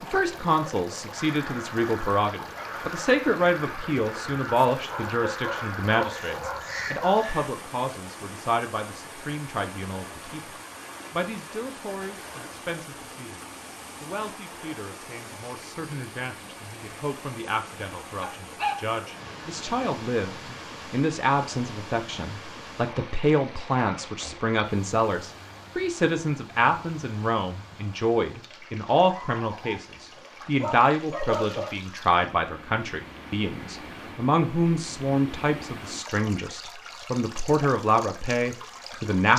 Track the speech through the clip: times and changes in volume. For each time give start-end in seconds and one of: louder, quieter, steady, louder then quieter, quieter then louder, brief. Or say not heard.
0.0-39.3 quieter then louder.